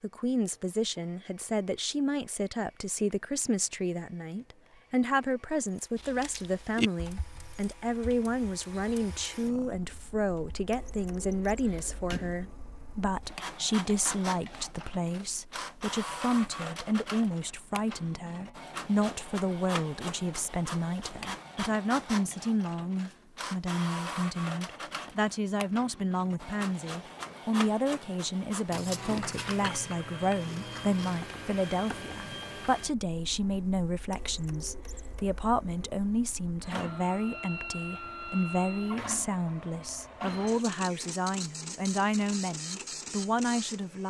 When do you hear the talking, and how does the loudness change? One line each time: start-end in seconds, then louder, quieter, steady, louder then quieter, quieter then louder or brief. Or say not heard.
0.0-44.0 steady.